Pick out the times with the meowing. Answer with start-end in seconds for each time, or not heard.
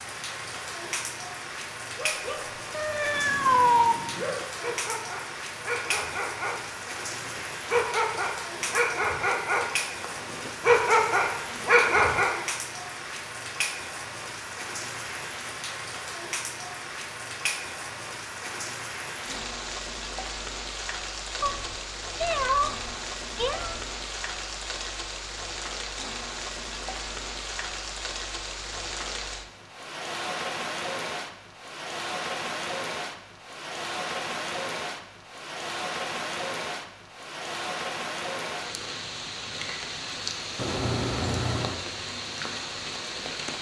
2.7-4.0, 21.4-23.9, 40.5-41.9.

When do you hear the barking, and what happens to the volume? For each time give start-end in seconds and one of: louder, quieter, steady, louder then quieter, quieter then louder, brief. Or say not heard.
1.9-12.3 louder.